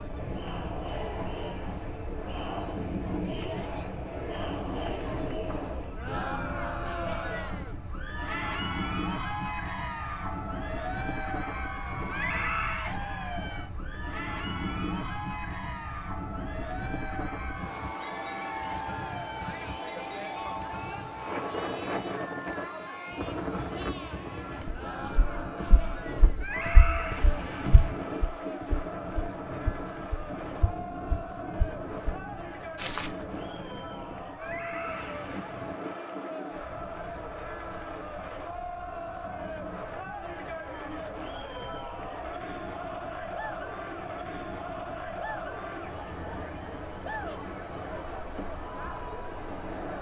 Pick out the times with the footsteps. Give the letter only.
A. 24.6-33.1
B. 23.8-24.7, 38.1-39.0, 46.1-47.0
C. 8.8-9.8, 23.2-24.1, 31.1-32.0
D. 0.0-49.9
A.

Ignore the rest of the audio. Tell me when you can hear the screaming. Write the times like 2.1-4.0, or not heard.
12.1-12.9, 26.4-27.2, 34.4-35.2.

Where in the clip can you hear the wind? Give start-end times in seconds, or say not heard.
0.0-49.9.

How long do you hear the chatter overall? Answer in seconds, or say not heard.
50 s.